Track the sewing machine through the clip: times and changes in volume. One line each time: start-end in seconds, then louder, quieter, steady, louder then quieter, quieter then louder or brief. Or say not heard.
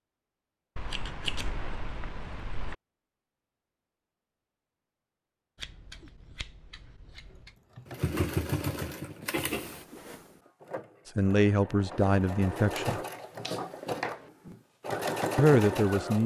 7.8-16.2 quieter then louder.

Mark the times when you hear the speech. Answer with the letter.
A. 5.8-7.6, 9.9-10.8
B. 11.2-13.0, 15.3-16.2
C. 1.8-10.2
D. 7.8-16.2
B.